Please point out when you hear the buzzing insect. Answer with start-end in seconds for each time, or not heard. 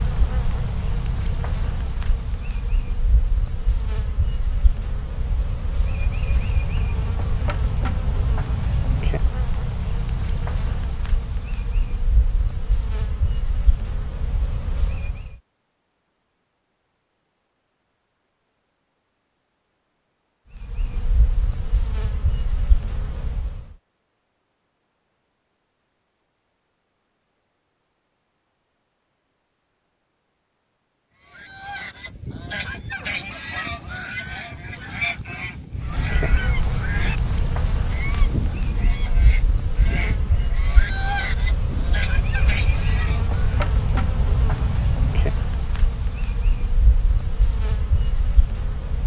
0.0-15.4, 20.5-23.8, 35.8-49.0.